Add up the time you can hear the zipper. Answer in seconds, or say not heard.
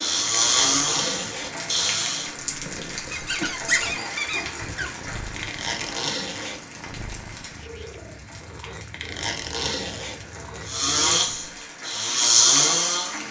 4 s.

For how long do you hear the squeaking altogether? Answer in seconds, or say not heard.
2 s.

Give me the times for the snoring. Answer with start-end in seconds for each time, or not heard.
0.0-2.3, 10.7-13.2.